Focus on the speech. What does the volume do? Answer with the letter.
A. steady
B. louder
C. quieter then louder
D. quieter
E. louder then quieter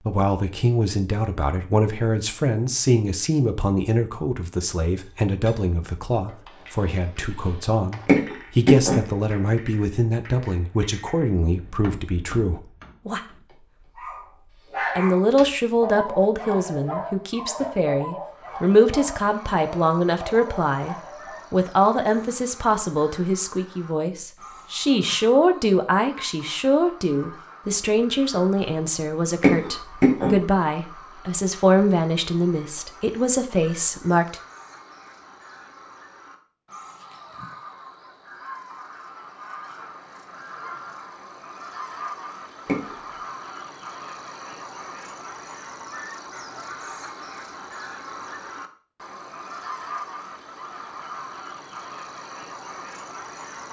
A.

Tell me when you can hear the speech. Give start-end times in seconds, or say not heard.
0.1-13.2, 14.9-34.4.